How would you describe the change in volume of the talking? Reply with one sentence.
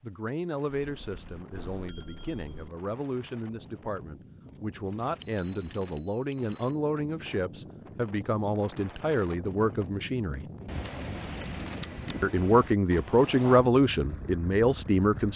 The volume of the talking goes up.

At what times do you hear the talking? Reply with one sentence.
The talking can be heard from 0.0 to 10.4 s and from 12.2 to 15.3 s.